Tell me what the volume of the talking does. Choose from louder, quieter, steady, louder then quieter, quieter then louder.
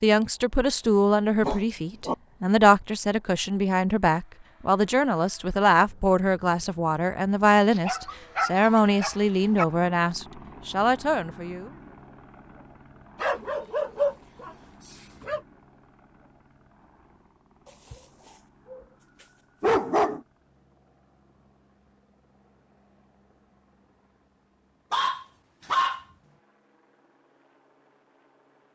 steady.